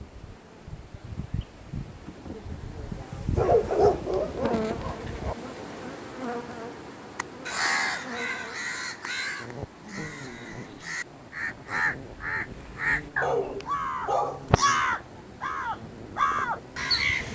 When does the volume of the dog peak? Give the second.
4 s.